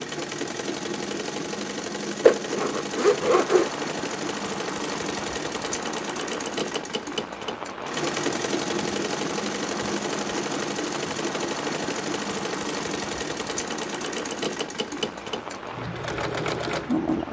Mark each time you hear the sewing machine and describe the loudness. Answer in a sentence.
The sewing machine can be heard from 0.0 to 17.2 s, at a steady volume.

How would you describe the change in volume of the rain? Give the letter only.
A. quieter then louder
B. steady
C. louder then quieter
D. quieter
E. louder
B.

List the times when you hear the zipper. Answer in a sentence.
You can hear the zipper from 2.2 to 3.7 s.